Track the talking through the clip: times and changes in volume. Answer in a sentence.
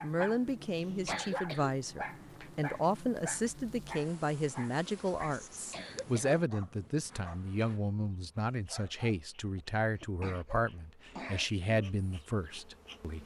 The talking can be heard from 0.0 to 13.2 s, at a steady volume.